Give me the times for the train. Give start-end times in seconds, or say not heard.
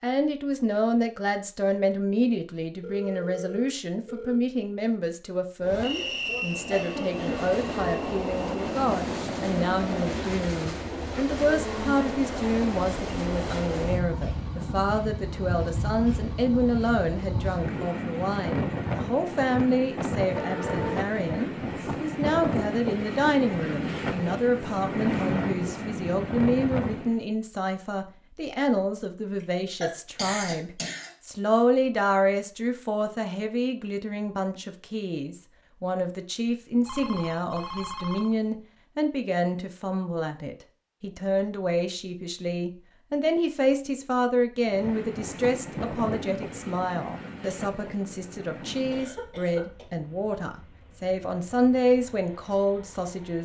5.6-27.2, 44.6-53.3.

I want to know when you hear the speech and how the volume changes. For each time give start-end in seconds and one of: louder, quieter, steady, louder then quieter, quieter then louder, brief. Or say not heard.
0.0-53.3 steady.